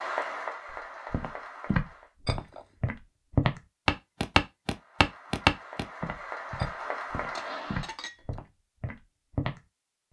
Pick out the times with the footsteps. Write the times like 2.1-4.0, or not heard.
1.1-9.6.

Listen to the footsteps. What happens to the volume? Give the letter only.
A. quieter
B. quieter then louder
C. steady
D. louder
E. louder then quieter
E.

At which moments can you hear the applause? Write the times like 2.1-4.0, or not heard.
0.0-2.1, 4.7-8.0.